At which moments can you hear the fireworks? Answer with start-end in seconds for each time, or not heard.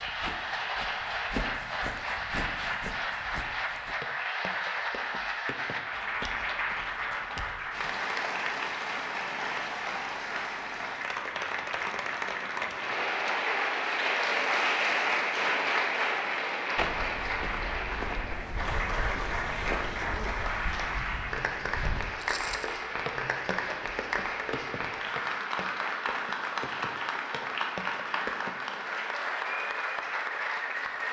not heard.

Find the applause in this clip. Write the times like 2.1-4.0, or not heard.
0.0-31.0.